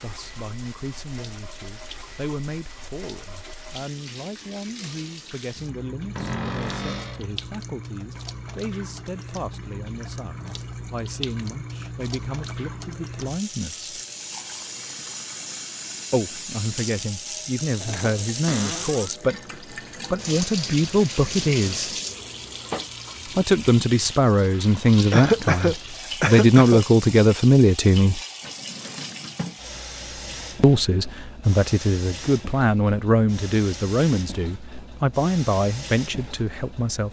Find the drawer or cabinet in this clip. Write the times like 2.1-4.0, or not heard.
6.2-7.3, 18.4-19.1, 28.4-29.6.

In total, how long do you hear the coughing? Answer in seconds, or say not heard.
2 s.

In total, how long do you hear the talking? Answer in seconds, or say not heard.
31 s.